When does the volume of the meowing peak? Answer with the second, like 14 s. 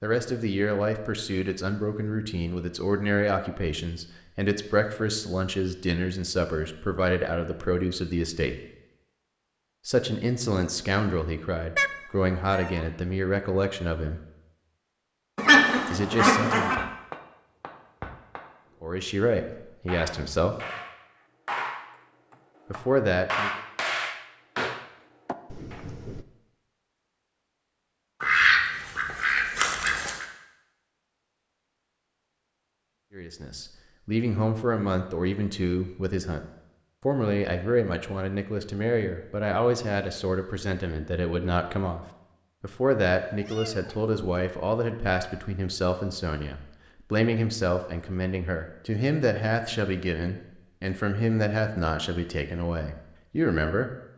12 s.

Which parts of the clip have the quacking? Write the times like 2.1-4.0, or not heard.
15.3-16.8, 28.2-30.2.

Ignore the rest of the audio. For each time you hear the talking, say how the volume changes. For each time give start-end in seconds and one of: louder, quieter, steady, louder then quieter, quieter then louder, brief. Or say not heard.
0.0-8.6 steady
9.8-14.2 steady
15.9-16.9 brief
18.8-20.6 brief
22.7-23.6 brief
33.1-53.9 steady.